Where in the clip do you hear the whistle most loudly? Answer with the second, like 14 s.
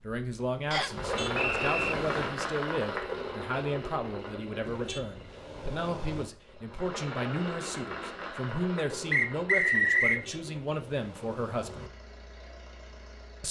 10 s.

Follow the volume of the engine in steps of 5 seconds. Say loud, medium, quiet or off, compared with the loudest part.
loud, medium, quiet.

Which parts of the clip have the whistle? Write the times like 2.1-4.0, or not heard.
0.7-1.9, 9.1-10.2.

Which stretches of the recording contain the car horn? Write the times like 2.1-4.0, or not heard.
0.9-2.4, 4.6-6.3, 10.0-11.9.